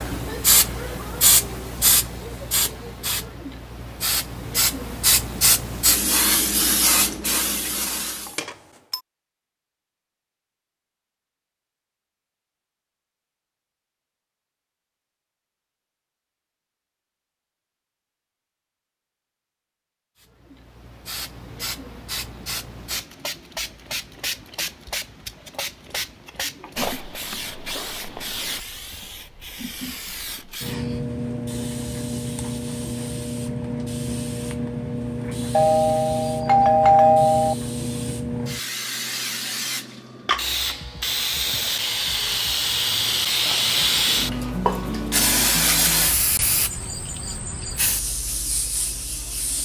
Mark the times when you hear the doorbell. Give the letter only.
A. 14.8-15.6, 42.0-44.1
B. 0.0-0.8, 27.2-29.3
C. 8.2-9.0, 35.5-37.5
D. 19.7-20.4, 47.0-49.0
C.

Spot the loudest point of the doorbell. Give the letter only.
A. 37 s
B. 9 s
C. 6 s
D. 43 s
A.